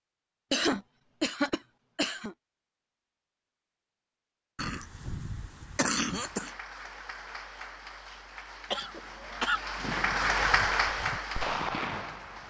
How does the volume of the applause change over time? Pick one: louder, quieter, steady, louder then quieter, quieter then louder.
louder then quieter.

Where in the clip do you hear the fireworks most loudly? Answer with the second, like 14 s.
12 s.